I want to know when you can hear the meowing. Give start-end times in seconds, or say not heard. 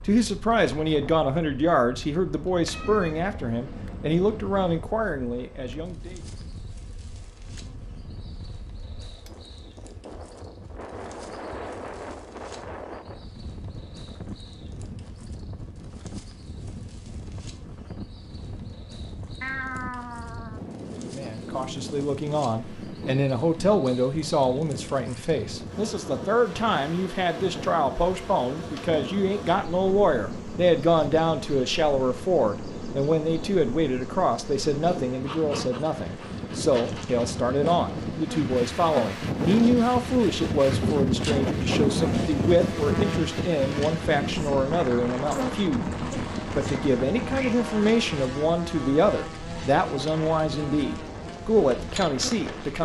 2.7-4.8, 19.4-20.6, 45.8-47.6.